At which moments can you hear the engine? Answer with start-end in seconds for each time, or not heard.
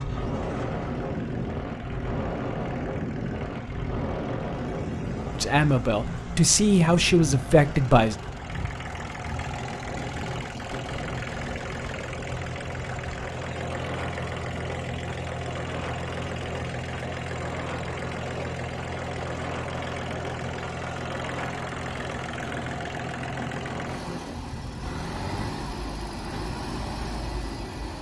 0.0-27.9.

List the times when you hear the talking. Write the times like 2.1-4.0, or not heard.
5.3-8.2.